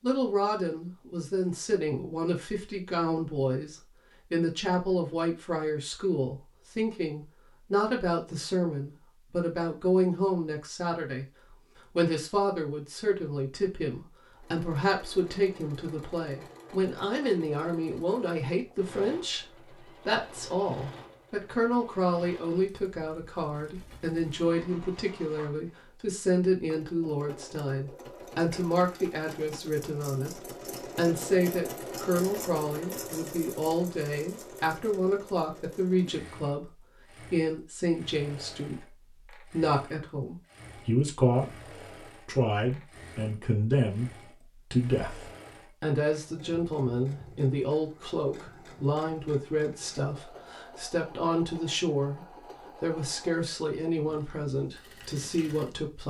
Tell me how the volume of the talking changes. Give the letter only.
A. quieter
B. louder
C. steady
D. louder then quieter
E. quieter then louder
C.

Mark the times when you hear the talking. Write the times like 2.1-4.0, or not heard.
0.0-56.0.